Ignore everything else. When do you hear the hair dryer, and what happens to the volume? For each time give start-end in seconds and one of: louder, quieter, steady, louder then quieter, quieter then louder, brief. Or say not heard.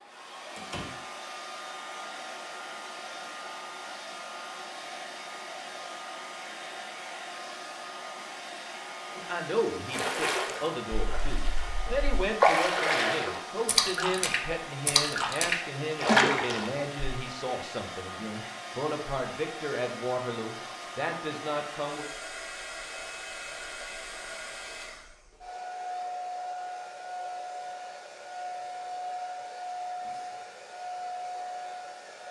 0.0-32.2 steady.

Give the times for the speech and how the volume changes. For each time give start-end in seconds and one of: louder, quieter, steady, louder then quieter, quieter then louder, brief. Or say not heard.
9.2-22.1 steady.